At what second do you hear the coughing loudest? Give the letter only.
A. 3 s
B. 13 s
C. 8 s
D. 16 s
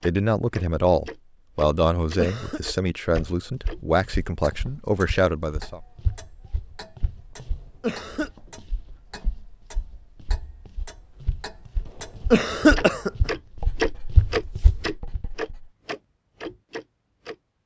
B.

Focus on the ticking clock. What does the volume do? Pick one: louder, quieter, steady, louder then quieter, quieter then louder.
quieter then louder.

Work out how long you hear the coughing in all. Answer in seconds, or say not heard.
2 s.